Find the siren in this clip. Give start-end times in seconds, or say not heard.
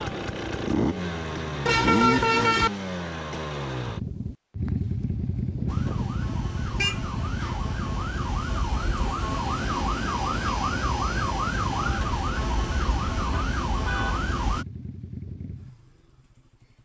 5.7-14.7.